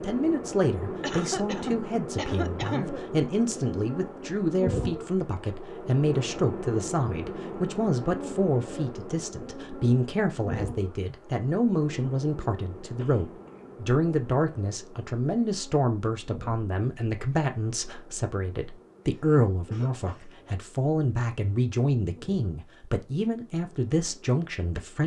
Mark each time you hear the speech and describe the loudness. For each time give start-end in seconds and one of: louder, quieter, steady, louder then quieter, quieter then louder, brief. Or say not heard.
0.0-25.0 steady.